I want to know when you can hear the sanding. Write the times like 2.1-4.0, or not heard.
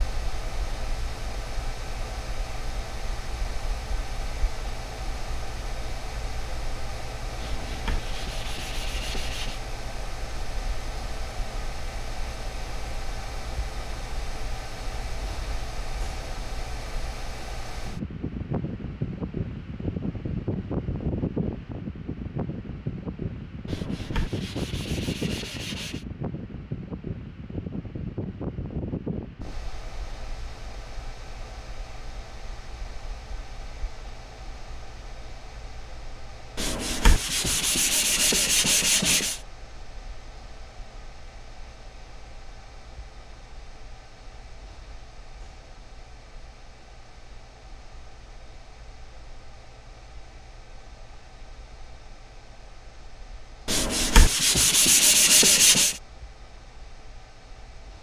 7.4-9.6, 23.6-26.1, 36.5-39.4, 53.6-56.0.